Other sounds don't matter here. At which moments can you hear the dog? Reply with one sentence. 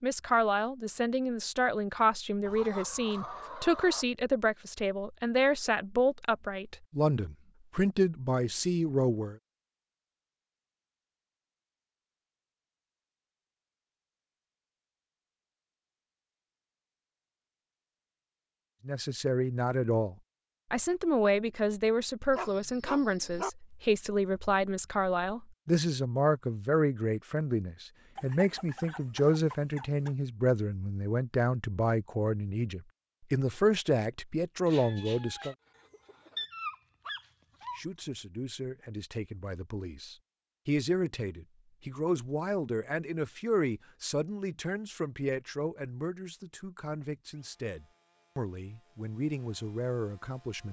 The dog can be heard from 22.4 to 23.5 s and from 36.4 to 37.8 s.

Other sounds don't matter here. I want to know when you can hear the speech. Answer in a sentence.
The speech can be heard from 0.0 to 9.3 s, from 18.9 to 35.5 s and from 37.7 to 50.6 s.